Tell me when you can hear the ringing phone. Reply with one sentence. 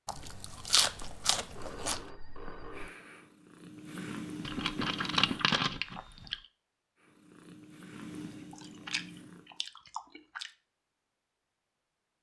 You can hear the ringing phone from 0.1 to 2.9 s.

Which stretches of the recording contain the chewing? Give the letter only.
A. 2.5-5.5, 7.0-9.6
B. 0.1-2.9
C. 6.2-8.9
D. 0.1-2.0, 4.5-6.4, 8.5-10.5
D.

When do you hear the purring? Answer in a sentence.
The purring can be heard from 2.5 to 5.5 s and from 7.0 to 9.6 s.